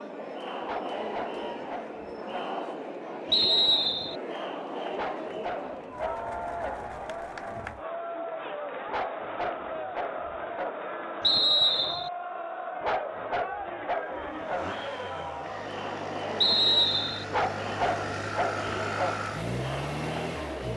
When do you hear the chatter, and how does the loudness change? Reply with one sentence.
The chatter can be heard from 0.0 to 20.7 s, at a steady volume.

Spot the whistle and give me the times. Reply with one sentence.
The whistle can be heard from 3.3 to 4.2 s, from 11.2 to 12.1 s and from 16.4 to 17.2 s.